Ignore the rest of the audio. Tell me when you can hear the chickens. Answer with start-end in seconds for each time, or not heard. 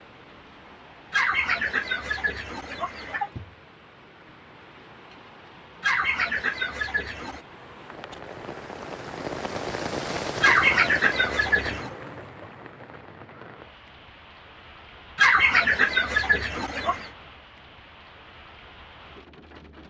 1.1-3.3, 5.8-7.4, 10.4-11.9, 15.2-17.1.